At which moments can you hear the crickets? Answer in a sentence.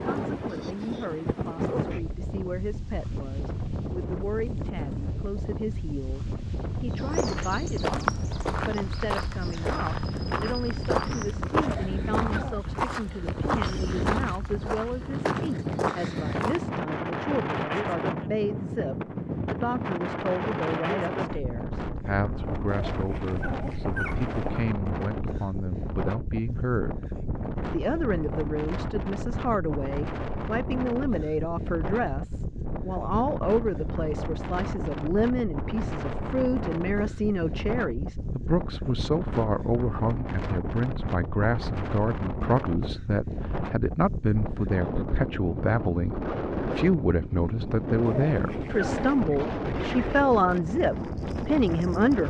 The crickets can't be heard in this clip.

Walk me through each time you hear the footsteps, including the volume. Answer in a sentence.
The footsteps can be heard from 7.0 to 16.8 s, at a steady volume.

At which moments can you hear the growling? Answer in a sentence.
The growling can be heard from 11.6 to 12.6 s, from 22.6 to 24.6 s and from 48.0 to 49.4 s.